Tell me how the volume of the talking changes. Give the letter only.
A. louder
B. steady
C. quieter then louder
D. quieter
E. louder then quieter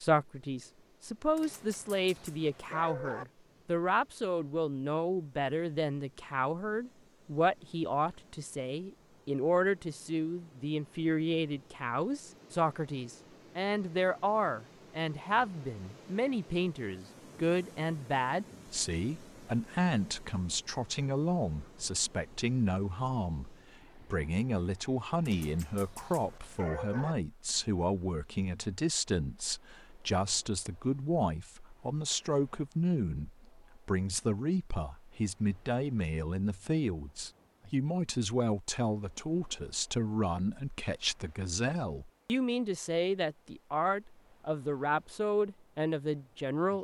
B.